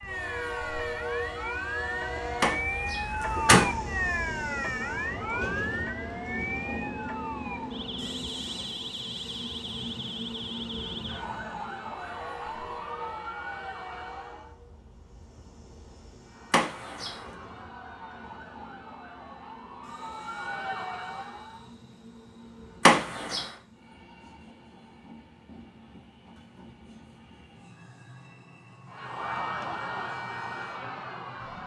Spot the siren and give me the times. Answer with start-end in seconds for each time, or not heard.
0.0-14.6, 16.2-21.8, 28.9-31.6.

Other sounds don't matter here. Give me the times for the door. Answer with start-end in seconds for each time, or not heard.
2.4-3.7, 16.5-17.1, 22.9-23.4.